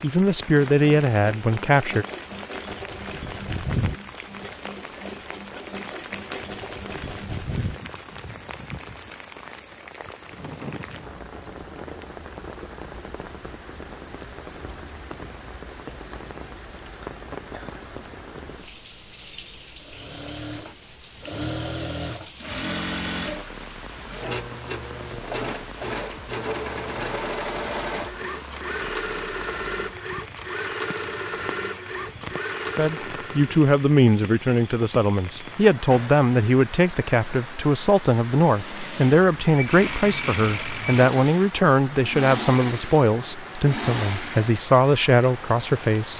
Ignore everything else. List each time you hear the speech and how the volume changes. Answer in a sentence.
The speech can be heard briefly from 0.0 to 2.0 s; and from 32.8 to 46.1 s, at a steady volume.